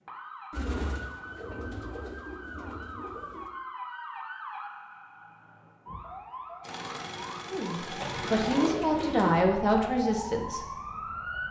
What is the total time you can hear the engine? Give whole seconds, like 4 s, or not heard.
2 s.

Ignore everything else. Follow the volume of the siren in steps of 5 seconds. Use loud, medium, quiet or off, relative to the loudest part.
medium, medium, loud.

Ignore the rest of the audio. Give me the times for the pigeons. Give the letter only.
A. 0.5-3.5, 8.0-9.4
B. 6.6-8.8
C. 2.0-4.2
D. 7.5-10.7
A.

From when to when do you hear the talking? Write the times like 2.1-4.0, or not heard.
7.5-10.7.